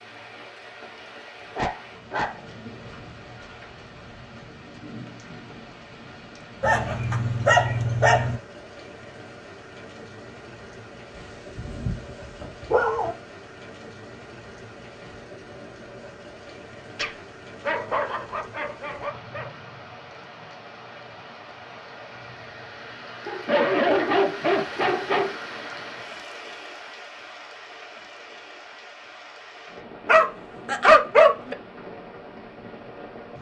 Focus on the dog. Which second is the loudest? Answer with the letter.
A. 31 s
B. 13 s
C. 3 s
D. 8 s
A.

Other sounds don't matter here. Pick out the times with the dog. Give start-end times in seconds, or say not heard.
1.6-2.9, 6.6-8.4, 11.6-13.2, 16.9-19.5, 23.2-25.4, 30.1-31.6.